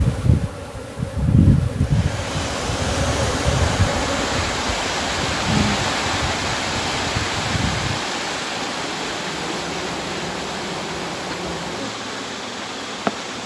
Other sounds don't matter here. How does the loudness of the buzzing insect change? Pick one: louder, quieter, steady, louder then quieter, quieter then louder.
quieter.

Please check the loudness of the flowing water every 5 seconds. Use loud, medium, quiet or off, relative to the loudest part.
loud, loud, medium.